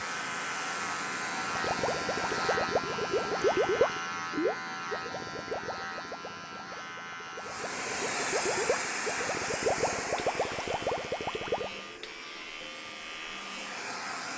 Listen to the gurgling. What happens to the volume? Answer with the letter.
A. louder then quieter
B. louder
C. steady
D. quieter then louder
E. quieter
D.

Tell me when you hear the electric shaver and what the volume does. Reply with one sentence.
The electric shaver can be heard from 0.0 to 14.3 s, getting quieter.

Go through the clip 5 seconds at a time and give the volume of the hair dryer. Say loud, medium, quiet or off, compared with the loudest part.
medium, loud, medium.